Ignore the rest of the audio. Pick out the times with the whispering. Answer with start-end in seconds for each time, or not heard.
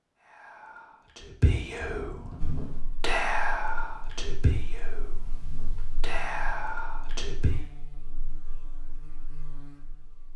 0.2-7.6.